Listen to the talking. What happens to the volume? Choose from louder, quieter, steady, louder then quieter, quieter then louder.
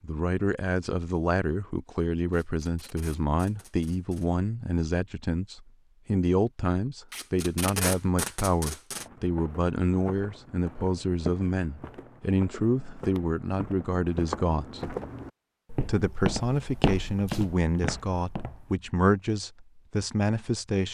steady.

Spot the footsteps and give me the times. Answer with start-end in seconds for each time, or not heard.
8.9-18.8.